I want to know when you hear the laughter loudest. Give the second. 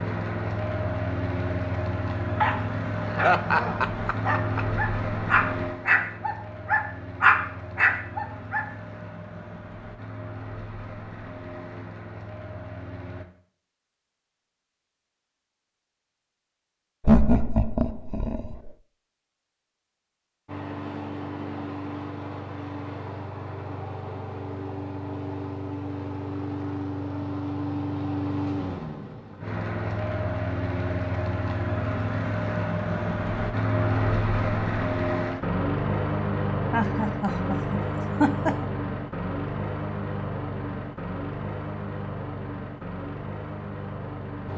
17 s.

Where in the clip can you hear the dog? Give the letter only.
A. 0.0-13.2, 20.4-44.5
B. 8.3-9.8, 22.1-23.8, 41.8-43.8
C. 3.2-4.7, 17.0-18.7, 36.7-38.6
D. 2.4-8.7
D.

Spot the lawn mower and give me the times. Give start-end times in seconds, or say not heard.
0.0-13.2, 20.4-44.5.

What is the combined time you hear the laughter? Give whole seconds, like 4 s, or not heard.
5 s.